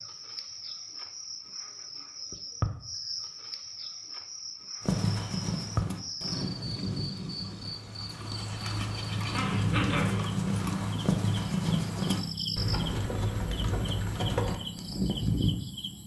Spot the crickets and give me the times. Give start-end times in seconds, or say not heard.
0.0-16.0.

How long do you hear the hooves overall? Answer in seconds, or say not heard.
11 s.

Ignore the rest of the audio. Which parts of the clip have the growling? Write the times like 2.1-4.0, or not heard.
9.3-10.2.